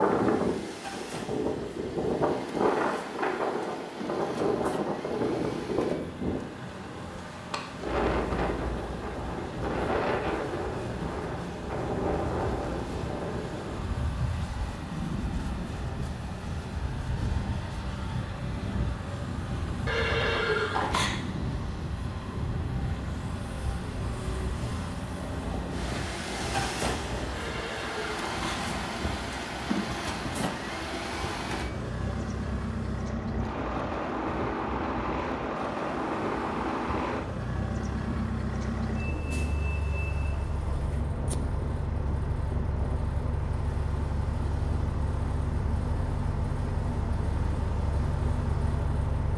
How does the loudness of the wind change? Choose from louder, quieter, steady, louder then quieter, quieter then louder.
quieter.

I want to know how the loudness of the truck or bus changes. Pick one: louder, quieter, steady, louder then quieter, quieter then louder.
louder.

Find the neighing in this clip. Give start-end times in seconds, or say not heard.
19.9-21.1, 27.3-28.6.